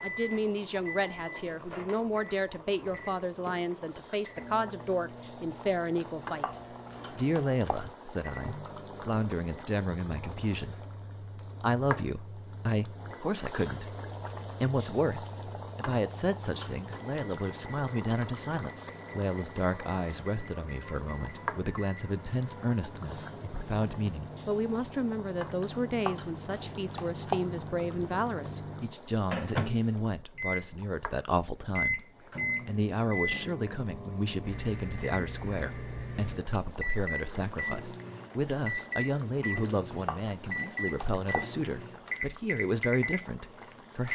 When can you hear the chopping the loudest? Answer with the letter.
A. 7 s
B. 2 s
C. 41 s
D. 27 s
D.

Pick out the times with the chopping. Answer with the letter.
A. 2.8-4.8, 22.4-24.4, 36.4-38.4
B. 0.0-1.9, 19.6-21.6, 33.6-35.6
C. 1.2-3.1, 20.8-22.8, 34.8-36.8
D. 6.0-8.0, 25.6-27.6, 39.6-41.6
D.